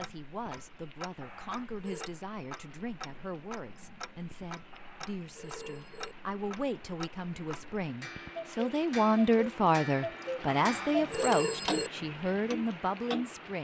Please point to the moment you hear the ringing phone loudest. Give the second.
11 s.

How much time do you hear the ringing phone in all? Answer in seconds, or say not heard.
4 s.